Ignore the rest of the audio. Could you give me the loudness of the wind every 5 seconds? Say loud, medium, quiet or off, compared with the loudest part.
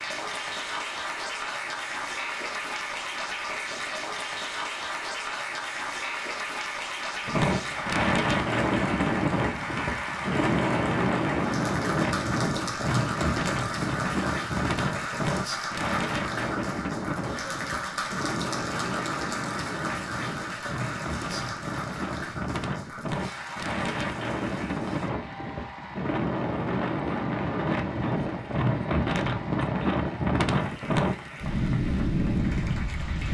off, loud, loud, medium, medium, loud, loud.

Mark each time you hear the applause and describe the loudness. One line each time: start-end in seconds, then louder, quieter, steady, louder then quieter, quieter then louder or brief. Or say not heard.
0.0-33.3 quieter.